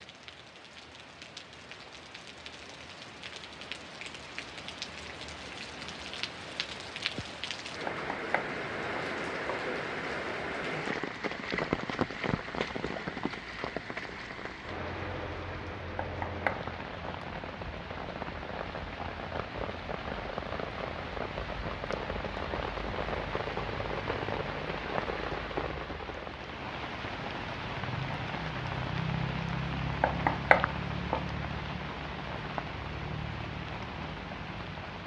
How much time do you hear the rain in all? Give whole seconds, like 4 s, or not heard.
35 s.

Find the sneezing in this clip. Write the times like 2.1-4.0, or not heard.
not heard.